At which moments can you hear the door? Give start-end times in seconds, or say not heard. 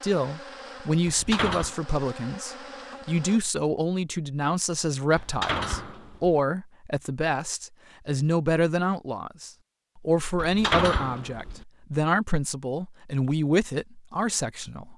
1.1-1.8, 5.2-6.4, 10.3-11.7.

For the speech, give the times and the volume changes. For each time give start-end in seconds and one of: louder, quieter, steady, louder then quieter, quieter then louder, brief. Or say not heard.
0.0-14.9 steady.